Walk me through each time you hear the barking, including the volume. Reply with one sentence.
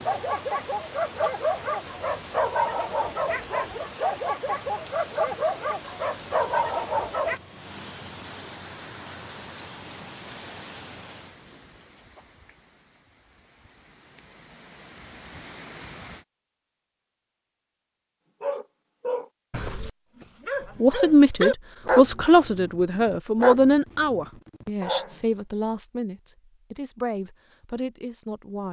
The barking can be heard from 0.1 to 7.4 s, at a steady volume; and from 18.4 to 25.2 s, getting louder then quieter.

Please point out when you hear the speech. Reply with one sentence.
You can hear the speech from 20.8 to 28.6 s.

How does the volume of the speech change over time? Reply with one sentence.
The volume of the speech goes down.